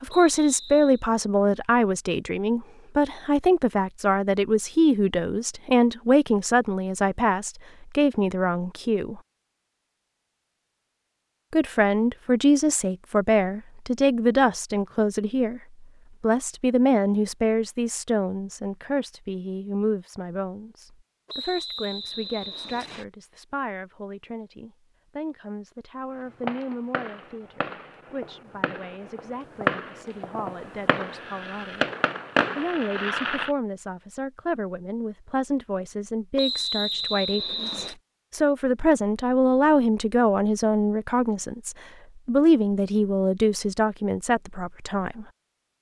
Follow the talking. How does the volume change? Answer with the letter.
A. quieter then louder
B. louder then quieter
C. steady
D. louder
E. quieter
A.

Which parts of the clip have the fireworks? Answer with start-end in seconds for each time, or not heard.
26.1-33.5.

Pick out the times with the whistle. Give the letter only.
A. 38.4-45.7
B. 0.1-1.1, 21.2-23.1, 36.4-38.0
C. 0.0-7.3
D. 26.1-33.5
B.